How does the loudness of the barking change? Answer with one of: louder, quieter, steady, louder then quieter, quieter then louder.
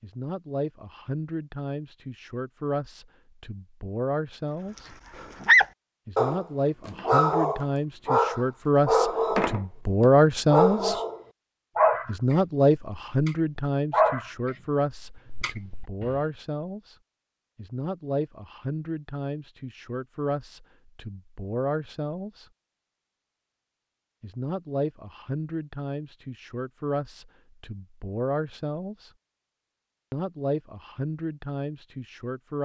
quieter.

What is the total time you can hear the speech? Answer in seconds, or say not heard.
27 s.